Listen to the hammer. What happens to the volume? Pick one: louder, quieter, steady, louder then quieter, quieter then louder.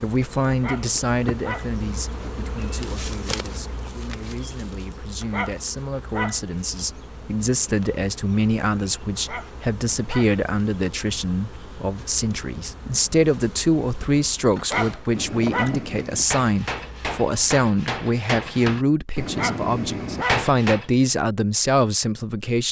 louder.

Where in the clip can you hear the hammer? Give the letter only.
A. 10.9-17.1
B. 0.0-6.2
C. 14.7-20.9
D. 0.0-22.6
C.